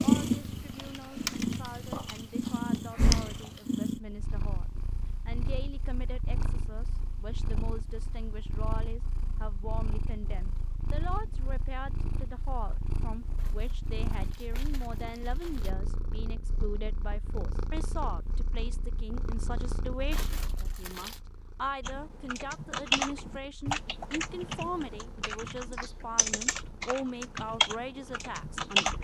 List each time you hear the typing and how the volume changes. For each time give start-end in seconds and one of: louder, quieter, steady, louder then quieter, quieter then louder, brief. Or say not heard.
0.1-2.8 brief
21.9-29.0 quieter then louder.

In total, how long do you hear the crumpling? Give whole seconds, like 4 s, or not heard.
4 s.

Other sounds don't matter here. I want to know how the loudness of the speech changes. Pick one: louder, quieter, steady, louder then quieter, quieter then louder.
louder.